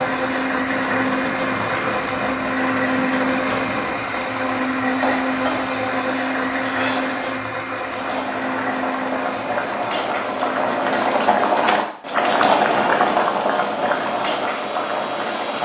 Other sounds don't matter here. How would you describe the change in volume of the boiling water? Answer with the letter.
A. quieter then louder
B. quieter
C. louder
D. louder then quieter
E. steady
C.